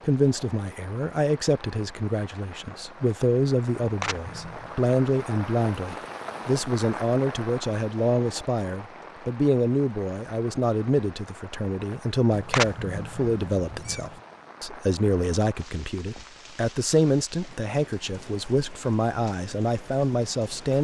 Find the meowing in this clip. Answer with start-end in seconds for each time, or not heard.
3.8-4.8, 12.3-14.2.